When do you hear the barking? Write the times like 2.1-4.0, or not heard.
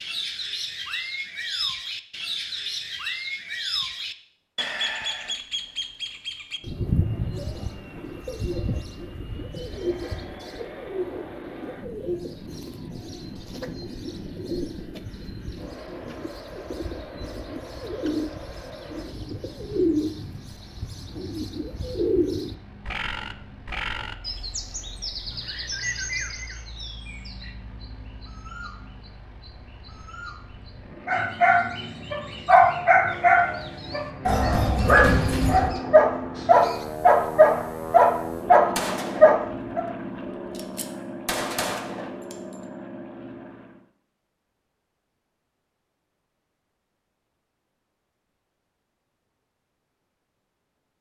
31.1-39.8.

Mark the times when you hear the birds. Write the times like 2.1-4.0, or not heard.
0.0-36.9.